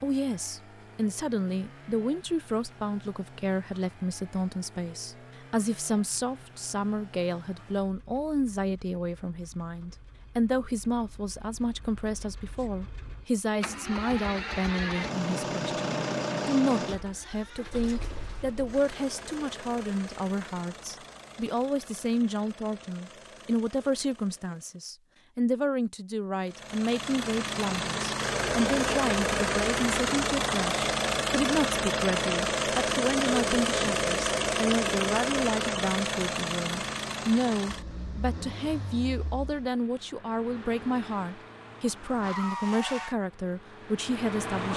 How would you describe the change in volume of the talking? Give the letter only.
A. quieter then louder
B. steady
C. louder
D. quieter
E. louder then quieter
B.